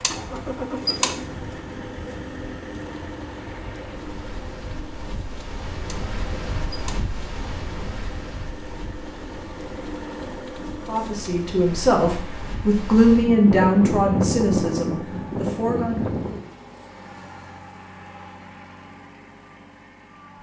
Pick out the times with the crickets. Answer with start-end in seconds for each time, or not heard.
not heard.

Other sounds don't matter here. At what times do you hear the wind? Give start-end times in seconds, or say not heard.
0.0-16.4.